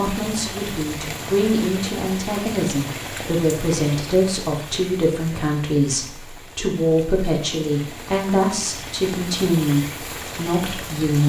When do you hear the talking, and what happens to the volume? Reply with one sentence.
You can hear the talking from 0.0 to 11.2 s, at a steady volume.